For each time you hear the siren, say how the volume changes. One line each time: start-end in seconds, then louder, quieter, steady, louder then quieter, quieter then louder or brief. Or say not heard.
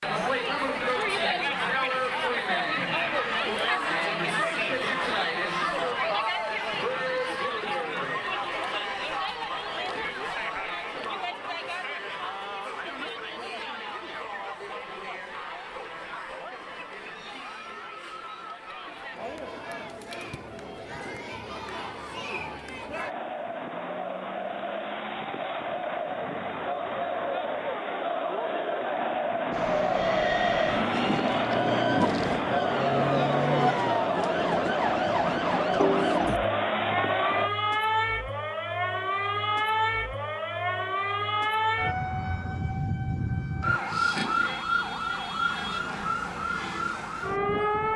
29.5-47.9 steady.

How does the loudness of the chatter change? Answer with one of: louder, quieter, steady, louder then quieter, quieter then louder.
quieter then louder.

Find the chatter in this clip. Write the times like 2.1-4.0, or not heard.
0.0-37.5.